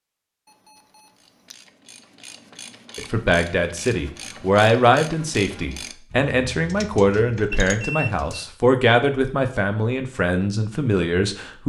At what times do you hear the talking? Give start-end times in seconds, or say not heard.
3.0-11.6.